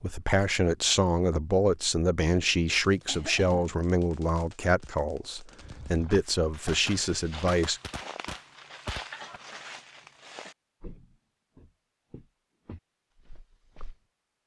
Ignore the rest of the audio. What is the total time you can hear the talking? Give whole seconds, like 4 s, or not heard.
8 s.